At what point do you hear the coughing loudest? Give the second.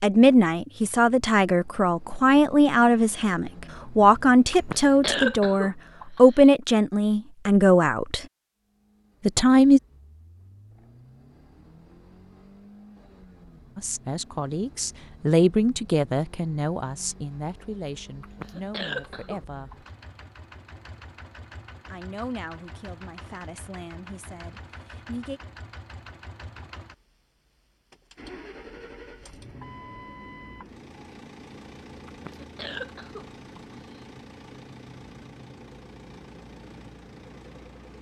5 s.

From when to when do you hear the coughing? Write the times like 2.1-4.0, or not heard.
4.5-6.4, 18.2-19.9, 32.0-34.0.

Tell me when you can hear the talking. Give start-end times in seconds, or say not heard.
0.0-8.2, 9.2-9.8, 13.8-19.9, 21.9-25.4.